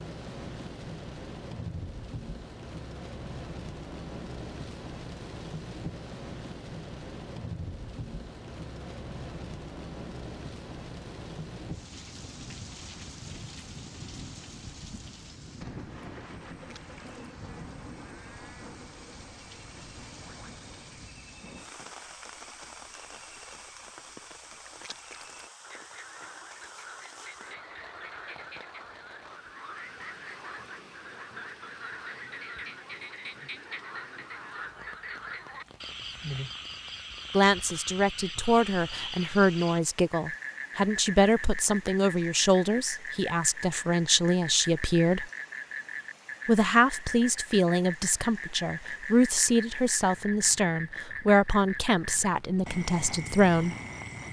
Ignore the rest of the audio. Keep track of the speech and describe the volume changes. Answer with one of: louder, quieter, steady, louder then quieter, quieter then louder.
steady.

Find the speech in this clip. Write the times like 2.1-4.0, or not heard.
37.3-45.3, 46.5-53.8.